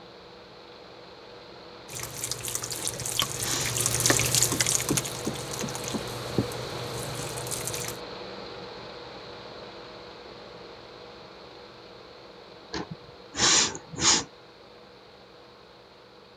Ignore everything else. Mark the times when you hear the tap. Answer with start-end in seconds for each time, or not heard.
1.9-8.0.